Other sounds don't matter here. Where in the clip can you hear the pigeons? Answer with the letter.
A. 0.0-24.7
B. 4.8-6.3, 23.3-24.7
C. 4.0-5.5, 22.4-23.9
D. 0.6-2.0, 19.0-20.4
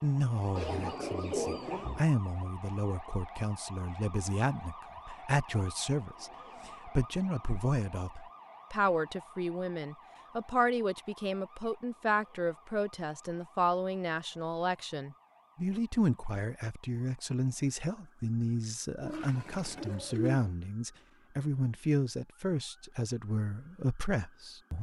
D.